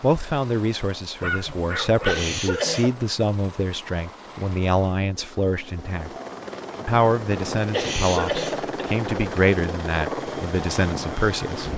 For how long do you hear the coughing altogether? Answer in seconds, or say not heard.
2 s.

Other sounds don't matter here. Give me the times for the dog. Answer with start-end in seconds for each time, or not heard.
1.2-2.4.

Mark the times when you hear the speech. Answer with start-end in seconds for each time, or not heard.
0.0-6.1, 6.8-11.7.